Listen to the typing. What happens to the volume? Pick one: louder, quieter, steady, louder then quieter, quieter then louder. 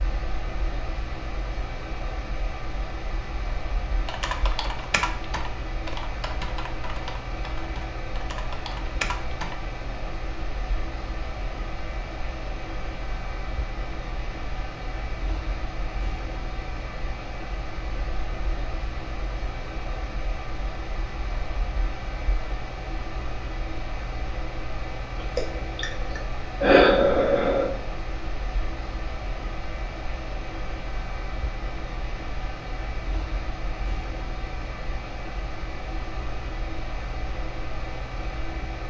quieter then louder.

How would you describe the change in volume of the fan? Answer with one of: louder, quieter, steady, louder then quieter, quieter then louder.
steady.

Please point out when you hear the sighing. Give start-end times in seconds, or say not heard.
25.2-27.8.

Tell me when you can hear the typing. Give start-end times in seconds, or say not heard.
4.0-9.6.